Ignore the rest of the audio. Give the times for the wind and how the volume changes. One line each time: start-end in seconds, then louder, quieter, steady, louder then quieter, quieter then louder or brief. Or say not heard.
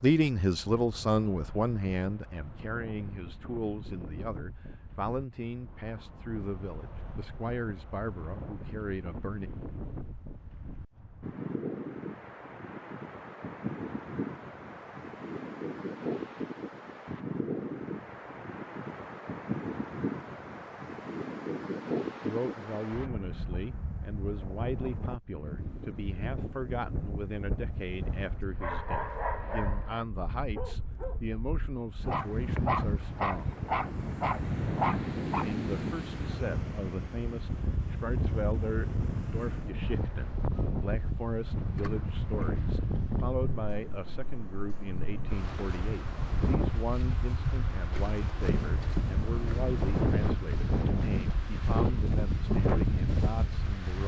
0.1-54.0 louder.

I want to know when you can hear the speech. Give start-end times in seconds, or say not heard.
0.0-9.5, 22.2-33.5, 35.2-54.0.